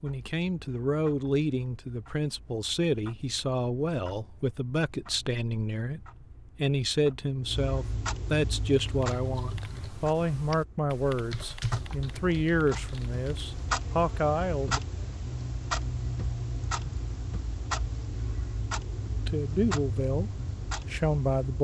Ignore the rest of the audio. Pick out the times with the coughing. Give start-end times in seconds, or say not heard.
not heard.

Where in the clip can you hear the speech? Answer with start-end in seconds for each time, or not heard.
0.0-14.8, 19.1-21.6.